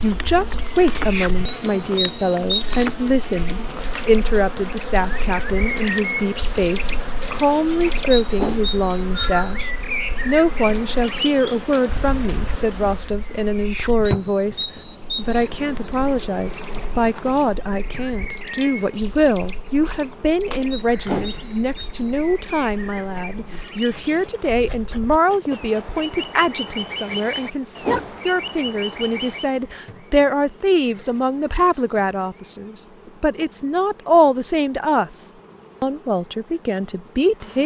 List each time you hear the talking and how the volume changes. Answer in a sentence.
The talking can be heard from 0.0 to 37.6 s, at a steady volume.